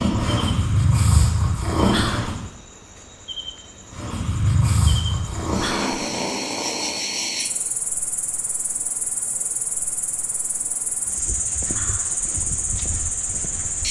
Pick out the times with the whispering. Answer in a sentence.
The whispering can be heard from 1.9 to 2.4 s, from 5.6 to 6.1 s and from 11.7 to 12.2 s.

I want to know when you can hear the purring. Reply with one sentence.
You can hear the purring from 0.0 to 2.5 s and from 3.9 to 7.5 s.